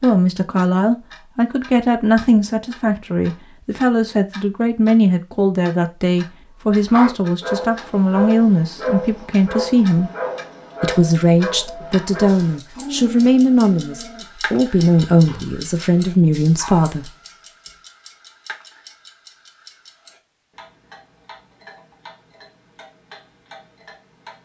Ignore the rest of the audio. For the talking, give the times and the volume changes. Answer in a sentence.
The talking can be heard from 0.0 to 10.1 s, at a steady volume; and from 10.8 to 17.1 s, at a steady volume.